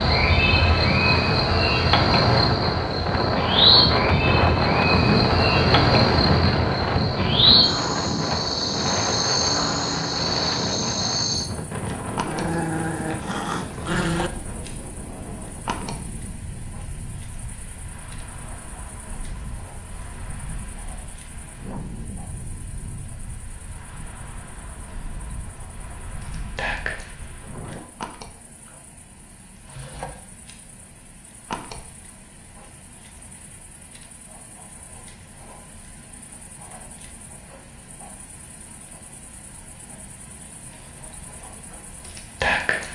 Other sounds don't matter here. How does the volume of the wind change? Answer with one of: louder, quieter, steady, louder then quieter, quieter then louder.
quieter.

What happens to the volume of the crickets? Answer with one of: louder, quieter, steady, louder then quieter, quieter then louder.
quieter then louder.